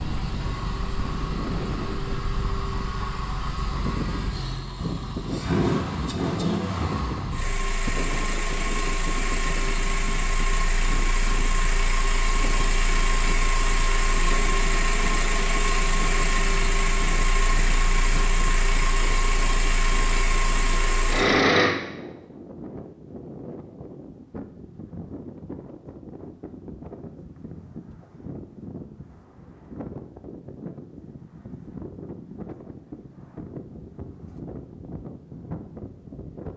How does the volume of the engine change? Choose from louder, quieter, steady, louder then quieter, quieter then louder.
louder.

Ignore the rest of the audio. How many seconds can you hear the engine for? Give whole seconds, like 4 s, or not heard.
22 s.